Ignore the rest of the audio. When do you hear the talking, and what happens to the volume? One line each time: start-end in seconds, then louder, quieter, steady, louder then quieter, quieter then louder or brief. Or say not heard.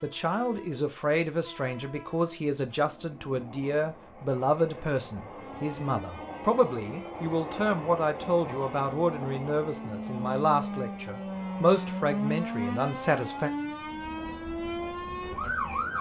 0.0-13.5 steady.